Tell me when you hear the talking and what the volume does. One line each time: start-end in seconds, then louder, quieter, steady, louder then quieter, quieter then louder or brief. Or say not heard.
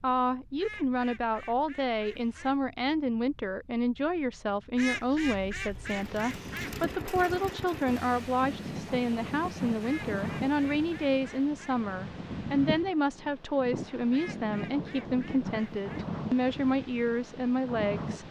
0.0-18.2 steady.